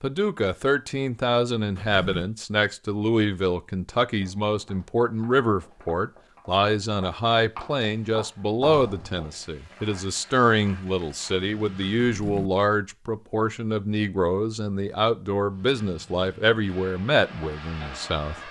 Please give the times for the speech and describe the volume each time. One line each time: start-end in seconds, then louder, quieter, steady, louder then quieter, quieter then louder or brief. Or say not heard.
0.0-18.4 steady.